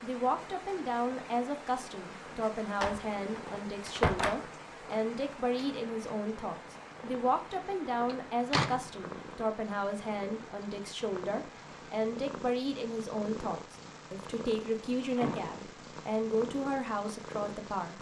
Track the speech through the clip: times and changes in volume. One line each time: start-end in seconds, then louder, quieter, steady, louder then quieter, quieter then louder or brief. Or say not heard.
0.0-17.9 steady.